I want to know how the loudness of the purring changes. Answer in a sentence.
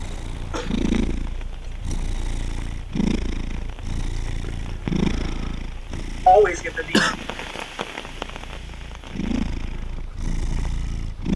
The volume of the purring goes down, then up.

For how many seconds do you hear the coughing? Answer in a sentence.
You can hear the coughing for 2 seconds altogether.